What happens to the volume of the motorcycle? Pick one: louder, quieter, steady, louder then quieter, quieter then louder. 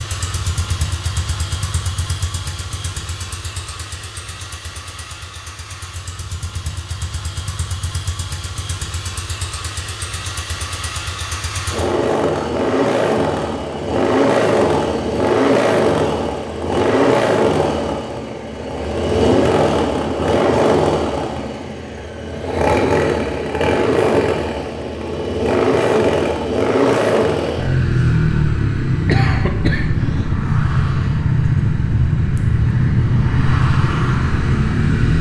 louder.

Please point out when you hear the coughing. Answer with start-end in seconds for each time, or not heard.
29.1-30.3.